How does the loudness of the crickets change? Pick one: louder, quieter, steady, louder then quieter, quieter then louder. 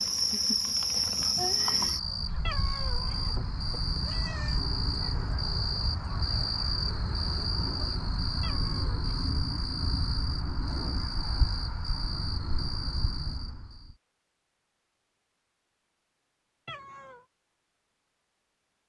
quieter.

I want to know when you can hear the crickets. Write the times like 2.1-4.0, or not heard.
0.0-13.9.